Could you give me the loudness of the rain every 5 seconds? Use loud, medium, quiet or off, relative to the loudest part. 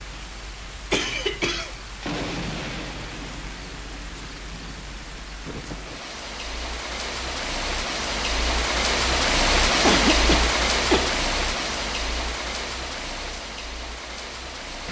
medium, loud, loud.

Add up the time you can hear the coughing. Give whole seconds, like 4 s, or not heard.
2 s.